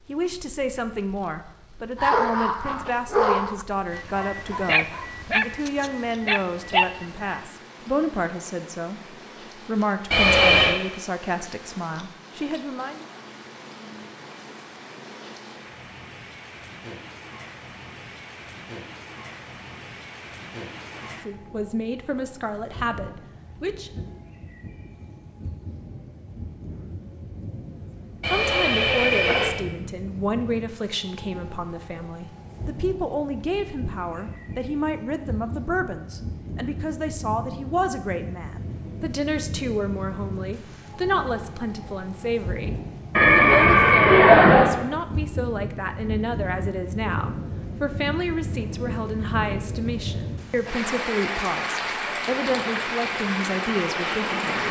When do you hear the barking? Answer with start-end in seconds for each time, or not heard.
1.9-7.4.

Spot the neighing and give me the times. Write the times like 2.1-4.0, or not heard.
10.1-10.8, 28.2-29.5, 43.1-44.7.